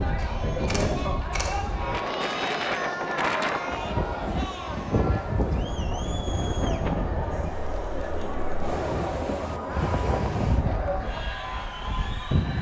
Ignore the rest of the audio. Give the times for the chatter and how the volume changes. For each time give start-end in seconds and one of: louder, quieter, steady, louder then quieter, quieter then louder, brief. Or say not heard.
0.0-12.5 steady.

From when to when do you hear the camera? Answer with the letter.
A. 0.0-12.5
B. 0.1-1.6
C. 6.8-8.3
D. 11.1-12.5
B.